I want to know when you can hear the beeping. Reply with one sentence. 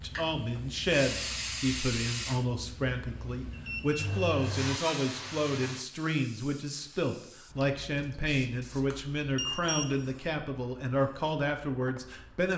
You can hear the beeping from 3.5 to 4.3 s and from 8.2 to 9.9 s.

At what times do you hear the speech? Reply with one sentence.
The speech can be heard from 0.0 to 12.5 s.